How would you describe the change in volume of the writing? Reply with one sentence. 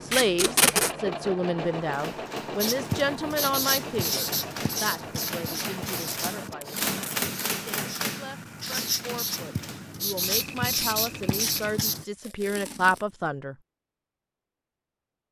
The loudness of the writing goes down, then up.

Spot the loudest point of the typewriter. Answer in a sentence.
The loudest moment of the typewriter is at 7 seconds.